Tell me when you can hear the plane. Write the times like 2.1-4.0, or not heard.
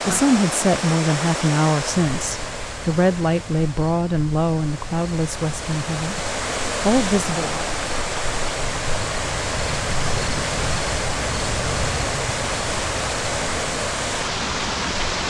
not heard.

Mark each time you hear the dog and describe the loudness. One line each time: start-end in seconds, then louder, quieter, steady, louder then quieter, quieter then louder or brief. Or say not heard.
not heard.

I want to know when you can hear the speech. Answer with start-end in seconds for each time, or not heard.
0.1-6.2, 6.8-7.7.